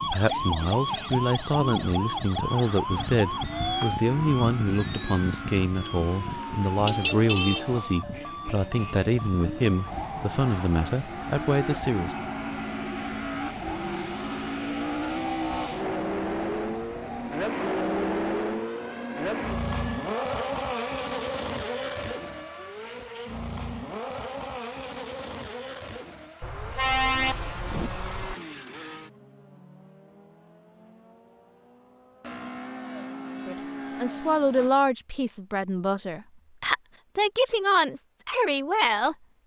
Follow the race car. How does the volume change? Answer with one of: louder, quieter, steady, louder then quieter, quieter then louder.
louder then quieter.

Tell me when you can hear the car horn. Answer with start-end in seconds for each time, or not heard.
6.8-7.7, 26.4-28.4.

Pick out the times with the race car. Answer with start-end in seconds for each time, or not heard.
0.1-34.8.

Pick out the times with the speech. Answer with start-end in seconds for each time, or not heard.
0.1-12.2, 33.5-39.1.